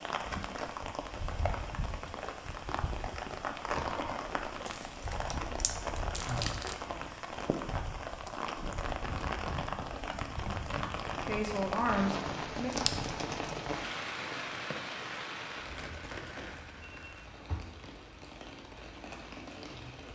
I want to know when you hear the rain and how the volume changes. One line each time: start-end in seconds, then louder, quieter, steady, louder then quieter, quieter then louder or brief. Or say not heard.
0.0-20.1 quieter.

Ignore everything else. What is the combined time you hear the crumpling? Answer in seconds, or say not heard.
3 s.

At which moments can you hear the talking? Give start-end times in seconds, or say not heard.
11.2-12.8.